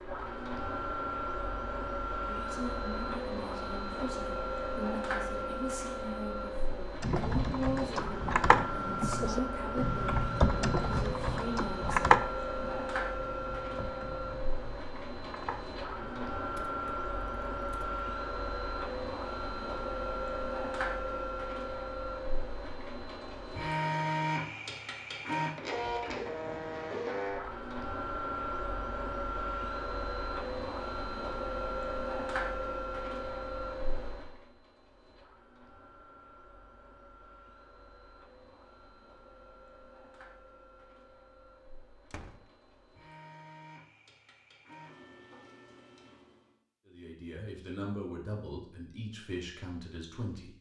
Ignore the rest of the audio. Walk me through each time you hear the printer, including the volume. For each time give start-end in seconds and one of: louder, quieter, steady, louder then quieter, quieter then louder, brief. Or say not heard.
0.0-46.6 quieter.